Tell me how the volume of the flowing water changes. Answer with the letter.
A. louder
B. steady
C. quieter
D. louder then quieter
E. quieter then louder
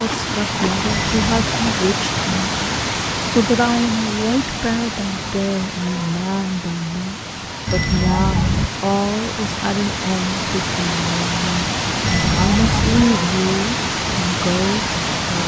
E.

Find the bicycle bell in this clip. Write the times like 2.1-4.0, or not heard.
0.8-1.5, 7.7-8.7, 12.0-13.1.